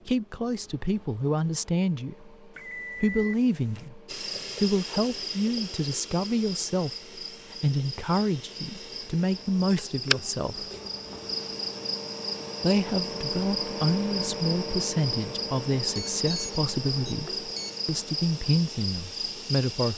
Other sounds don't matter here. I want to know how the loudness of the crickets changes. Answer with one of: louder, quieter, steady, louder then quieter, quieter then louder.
steady.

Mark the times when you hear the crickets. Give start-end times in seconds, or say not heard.
4.0-19.9.